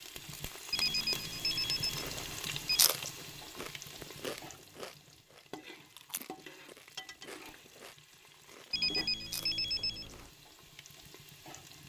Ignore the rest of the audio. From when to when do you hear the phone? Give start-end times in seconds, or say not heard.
0.7-2.9, 8.7-10.3.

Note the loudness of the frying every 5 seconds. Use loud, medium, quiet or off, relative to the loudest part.
loud, medium, medium.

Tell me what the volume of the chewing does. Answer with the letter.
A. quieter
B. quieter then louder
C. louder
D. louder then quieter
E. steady
B.